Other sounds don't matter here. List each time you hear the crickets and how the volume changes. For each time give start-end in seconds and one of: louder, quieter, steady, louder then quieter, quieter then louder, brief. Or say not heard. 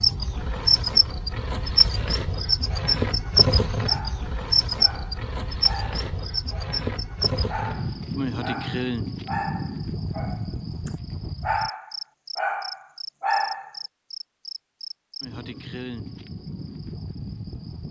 0.0-17.8 quieter.